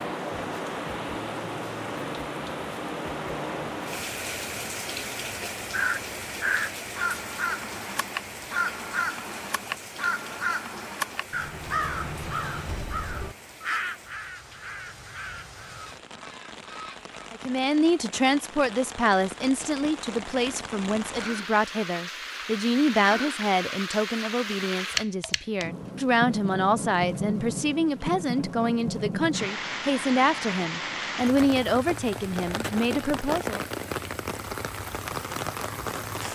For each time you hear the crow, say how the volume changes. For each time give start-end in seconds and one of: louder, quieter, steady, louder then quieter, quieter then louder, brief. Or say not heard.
5.7-17.1 quieter.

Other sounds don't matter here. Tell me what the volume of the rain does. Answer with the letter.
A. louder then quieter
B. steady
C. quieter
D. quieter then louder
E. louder
D.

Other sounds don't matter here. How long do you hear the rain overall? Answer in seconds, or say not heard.
36 s.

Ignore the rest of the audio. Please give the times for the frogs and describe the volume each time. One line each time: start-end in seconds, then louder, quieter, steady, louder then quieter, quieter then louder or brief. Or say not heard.
not heard.